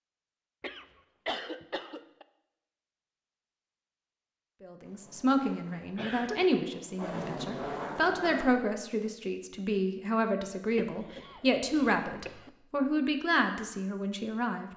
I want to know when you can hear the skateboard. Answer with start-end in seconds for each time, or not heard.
4.8-8.5.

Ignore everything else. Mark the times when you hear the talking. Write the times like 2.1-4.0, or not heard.
4.6-14.7.